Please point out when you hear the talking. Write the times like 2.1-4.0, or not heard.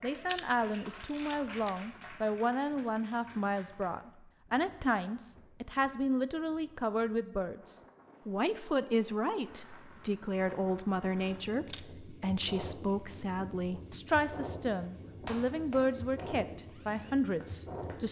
0.0-18.0.